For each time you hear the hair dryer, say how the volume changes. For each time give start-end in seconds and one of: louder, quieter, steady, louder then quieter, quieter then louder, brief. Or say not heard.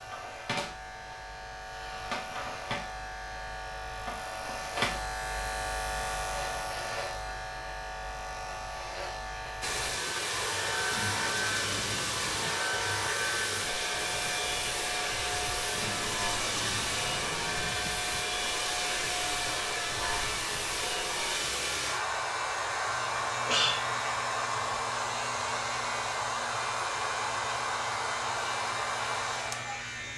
9.6-30.1 steady.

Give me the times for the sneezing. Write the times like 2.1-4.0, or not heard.
23.2-23.8.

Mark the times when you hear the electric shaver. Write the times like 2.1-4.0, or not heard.
0.0-30.1.